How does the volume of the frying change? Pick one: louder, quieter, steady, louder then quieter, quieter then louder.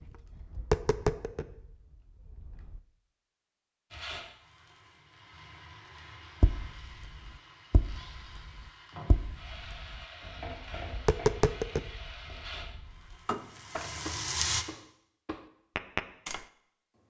louder.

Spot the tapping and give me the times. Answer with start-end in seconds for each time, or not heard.
0.0-2.8, 6.4-16.4.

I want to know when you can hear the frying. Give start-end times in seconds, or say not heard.
3.9-14.7.